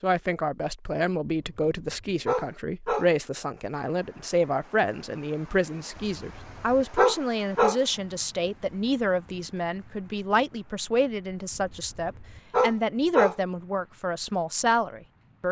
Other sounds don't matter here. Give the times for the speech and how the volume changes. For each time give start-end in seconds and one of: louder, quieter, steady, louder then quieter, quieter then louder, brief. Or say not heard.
0.0-15.4 steady.